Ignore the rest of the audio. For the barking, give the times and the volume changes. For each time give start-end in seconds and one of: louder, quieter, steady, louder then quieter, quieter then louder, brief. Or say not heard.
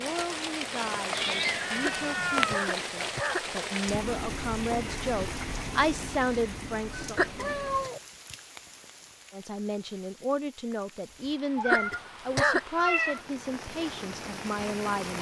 not heard.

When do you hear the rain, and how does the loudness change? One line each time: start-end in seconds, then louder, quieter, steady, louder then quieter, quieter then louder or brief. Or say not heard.
0.0-15.1 quieter then louder.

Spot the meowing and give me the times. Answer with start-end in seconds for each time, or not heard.
1.1-2.6, 6.9-8.0, 11.6-13.2.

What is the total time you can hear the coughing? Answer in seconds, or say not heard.
3 s.